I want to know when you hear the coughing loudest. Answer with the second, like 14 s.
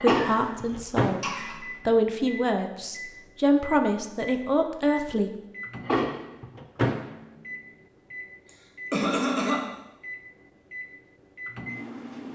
9 s.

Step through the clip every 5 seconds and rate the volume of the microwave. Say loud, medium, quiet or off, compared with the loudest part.
loud, loud, medium.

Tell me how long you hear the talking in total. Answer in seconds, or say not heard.
5 s.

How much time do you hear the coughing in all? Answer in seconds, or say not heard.
3 s.